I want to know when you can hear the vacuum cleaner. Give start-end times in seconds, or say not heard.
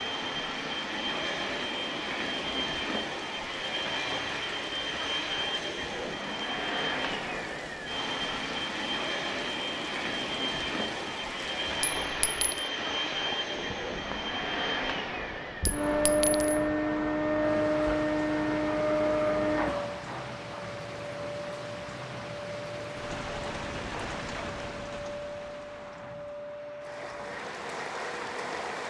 0.0-28.8.